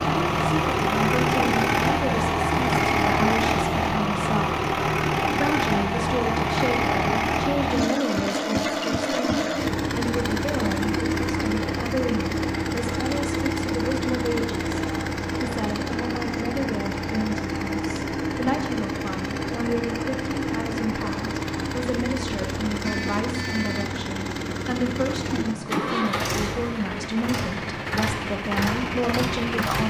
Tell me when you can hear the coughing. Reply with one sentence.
The coughing can't be heard in this clip.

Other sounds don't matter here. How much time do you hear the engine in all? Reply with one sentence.
You can hear the engine for 30 seconds altogether.